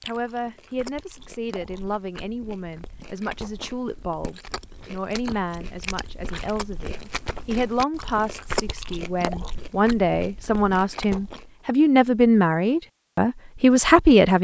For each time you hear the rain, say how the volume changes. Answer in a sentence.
The rain can't be heard in this clip.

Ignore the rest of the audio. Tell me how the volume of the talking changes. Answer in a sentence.
The loudness of the talking goes up.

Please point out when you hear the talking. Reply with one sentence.
You can hear the talking from 0.0 to 14.3 s.